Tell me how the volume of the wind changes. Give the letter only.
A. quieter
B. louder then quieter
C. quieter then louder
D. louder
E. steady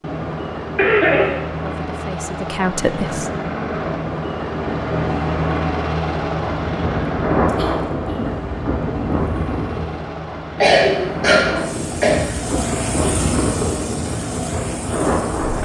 C.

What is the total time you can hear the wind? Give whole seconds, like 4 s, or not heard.
10 s.